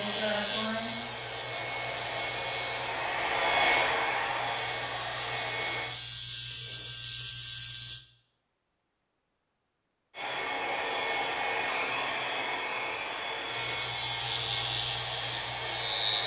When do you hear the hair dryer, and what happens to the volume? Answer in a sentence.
You can hear the hair dryer from 0.0 to 5.9 s, getting louder then quieter; and from 10.1 to 16.2 s, getting quieter.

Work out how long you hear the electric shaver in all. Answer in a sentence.
You can hear the electric shaver for 11 seconds altogether.